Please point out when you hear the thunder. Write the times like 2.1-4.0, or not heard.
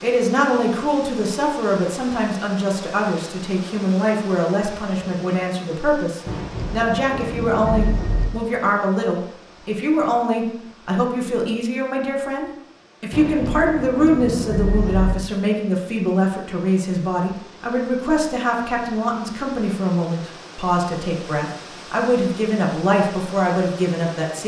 6.2-8.2, 13.1-15.2.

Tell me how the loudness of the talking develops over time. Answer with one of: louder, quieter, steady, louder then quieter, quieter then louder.
steady.